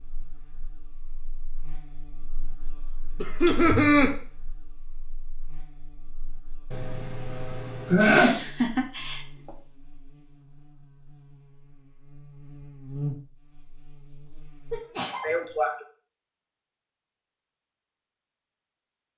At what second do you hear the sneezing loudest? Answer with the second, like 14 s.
8 s.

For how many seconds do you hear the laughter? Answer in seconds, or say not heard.
3 s.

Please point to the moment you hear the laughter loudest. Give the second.
4 s.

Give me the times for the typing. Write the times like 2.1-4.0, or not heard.
not heard.